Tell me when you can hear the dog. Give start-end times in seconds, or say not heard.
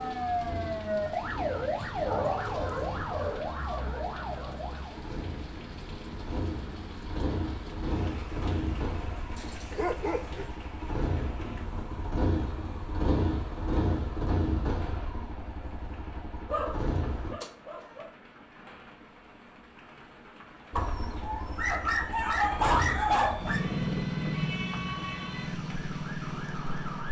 1.8-3.4, 9.3-10.6, 16.5-18.1, 20.8-23.6.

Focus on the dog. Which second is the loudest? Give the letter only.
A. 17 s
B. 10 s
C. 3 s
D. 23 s
D.